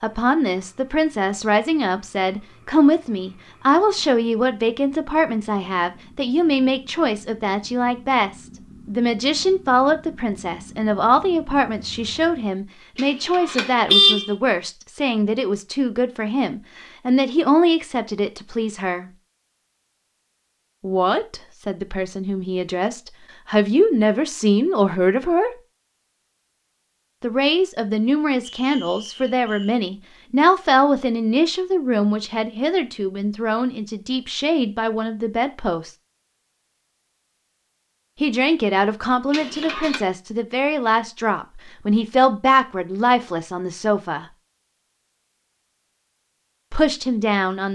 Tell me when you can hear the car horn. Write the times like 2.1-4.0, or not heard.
12.9-14.3, 39.3-40.0.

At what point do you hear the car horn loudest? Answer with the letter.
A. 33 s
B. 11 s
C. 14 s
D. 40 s
C.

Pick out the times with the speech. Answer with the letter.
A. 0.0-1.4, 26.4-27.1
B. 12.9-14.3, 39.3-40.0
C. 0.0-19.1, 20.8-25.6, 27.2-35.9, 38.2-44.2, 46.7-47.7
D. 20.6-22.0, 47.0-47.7
C.